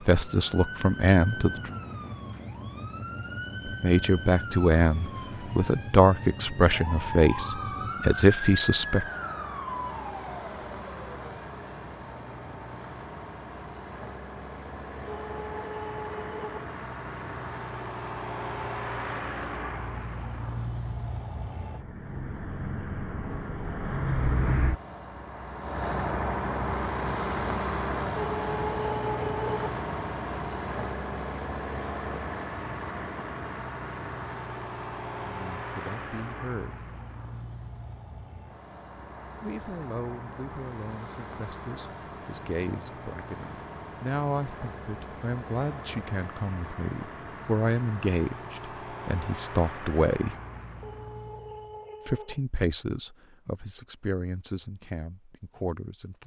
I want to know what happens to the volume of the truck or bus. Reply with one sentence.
The loudness of the truck or bus goes up, then down.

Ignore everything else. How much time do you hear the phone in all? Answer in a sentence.
You can hear the phone for 5 seconds altogether.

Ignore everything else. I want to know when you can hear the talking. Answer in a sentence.
The talking can be heard from 0.1 to 1.7 s, from 3.6 to 9.1 s, from 35.2 to 36.9 s, from 39.4 to 50.4 s and from 52.0 to 56.2 s.